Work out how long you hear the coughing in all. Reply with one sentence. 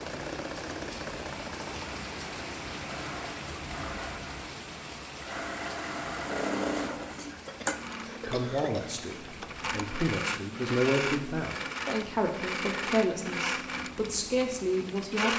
The coughing can be heard for 2 seconds in total.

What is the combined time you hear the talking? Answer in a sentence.
The talking can be heard for 7 seconds in total.